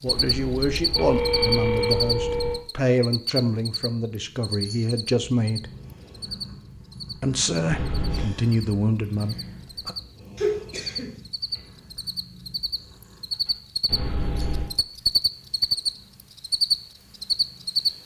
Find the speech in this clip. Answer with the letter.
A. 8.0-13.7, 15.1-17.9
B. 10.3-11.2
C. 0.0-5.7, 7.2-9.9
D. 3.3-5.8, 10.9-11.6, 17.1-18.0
C.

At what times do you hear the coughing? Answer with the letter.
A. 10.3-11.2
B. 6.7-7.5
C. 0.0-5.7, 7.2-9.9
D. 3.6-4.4
A.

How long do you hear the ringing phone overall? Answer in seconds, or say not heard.
4 s.